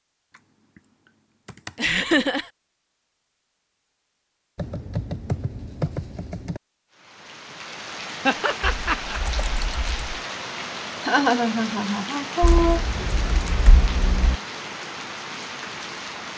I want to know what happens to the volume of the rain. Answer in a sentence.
The loudness of the rain stays about the same.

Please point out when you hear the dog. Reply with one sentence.
The dog can't be heard in this clip.